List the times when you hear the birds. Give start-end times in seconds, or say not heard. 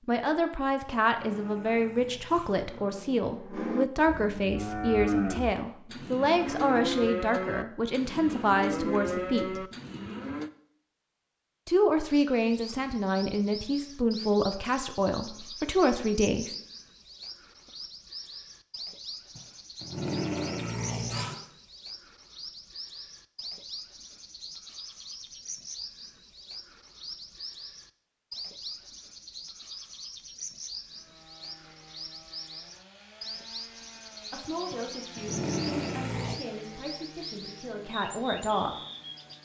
12.1-39.4.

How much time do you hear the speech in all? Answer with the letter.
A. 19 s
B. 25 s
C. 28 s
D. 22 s
A.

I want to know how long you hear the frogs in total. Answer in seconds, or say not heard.
not heard.